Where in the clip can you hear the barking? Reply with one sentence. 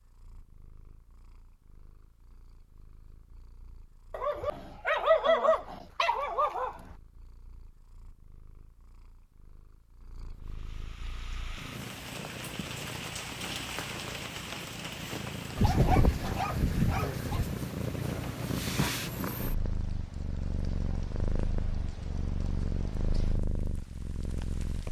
You can hear the barking from 4.1 to 6.8 s and from 15.6 to 17.6 s.